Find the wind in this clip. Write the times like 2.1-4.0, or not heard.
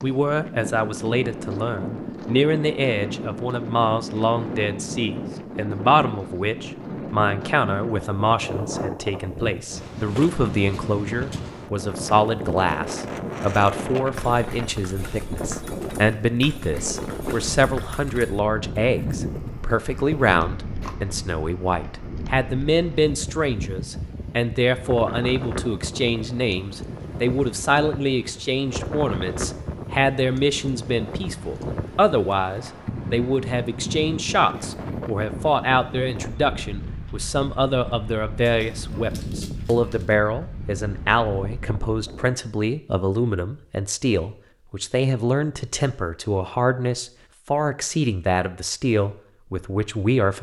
0.0-42.4.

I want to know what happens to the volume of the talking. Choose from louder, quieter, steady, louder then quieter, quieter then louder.
steady.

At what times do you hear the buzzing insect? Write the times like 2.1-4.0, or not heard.
not heard.